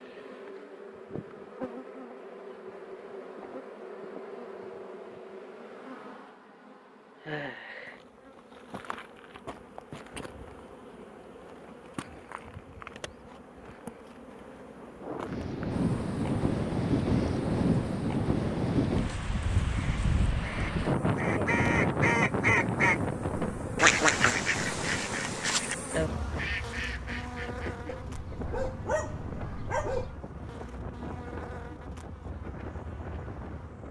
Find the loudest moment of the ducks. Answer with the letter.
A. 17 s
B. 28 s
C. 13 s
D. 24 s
D.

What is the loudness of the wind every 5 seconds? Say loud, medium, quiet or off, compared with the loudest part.
off, off, off, loud, loud, quiet, quiet.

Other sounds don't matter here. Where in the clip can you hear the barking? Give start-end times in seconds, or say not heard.
27.9-30.2.